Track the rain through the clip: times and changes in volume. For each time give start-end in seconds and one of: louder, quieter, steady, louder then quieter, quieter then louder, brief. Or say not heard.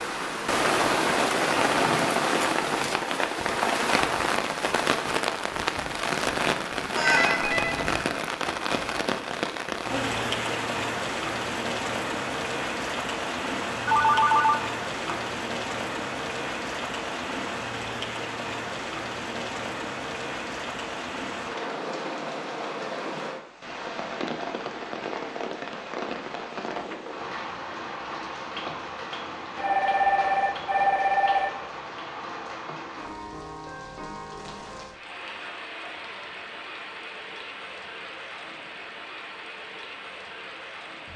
0.0-41.1 quieter.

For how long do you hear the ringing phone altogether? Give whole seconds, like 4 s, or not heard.
4 s.